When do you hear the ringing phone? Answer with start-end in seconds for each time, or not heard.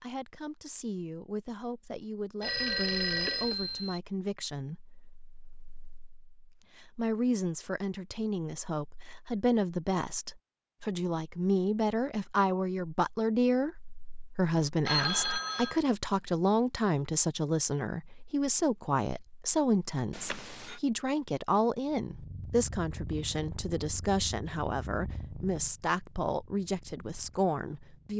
2.4-4.0, 14.8-15.8, 20.1-20.8.